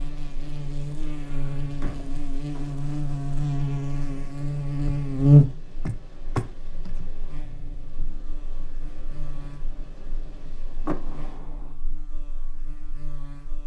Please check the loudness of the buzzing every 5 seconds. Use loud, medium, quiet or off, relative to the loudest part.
medium, loud, quiet.